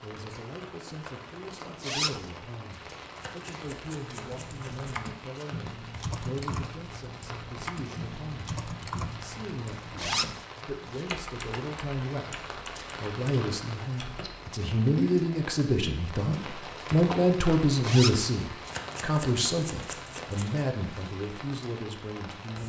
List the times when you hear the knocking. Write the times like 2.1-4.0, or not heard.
not heard.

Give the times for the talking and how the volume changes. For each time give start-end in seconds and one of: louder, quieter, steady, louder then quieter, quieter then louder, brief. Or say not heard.
0.0-22.6 louder.